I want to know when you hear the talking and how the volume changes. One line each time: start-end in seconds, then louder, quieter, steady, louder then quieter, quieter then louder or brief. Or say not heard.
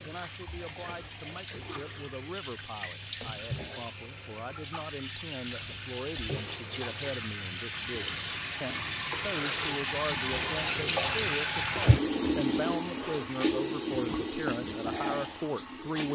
0.0-16.1 louder.